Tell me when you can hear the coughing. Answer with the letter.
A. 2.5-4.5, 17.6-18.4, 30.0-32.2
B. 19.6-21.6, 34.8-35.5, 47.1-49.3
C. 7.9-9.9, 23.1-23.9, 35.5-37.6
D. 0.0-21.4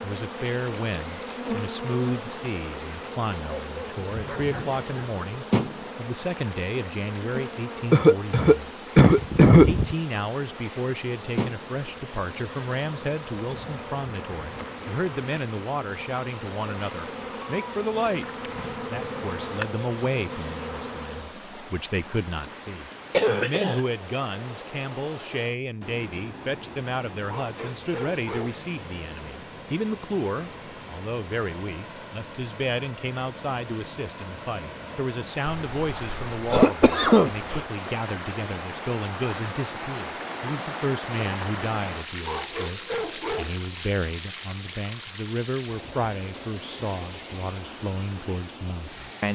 C.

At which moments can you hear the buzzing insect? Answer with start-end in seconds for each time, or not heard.
0.0-21.4.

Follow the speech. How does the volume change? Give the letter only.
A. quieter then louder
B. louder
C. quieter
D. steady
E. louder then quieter
D.